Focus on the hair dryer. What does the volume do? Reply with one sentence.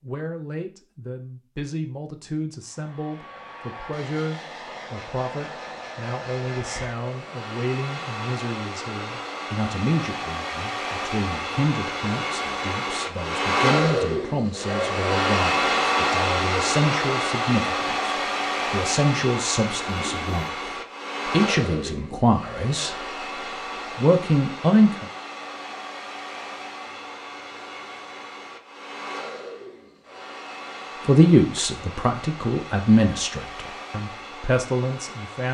The loudness of the hair dryer goes up, then down.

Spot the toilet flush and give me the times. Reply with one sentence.
The toilet flush can be heard from 19.9 to 20.4 s.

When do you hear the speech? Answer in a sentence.
The speech can be heard from 0.0 to 23.1 s, from 23.9 to 25.1 s and from 31.1 to 35.5 s.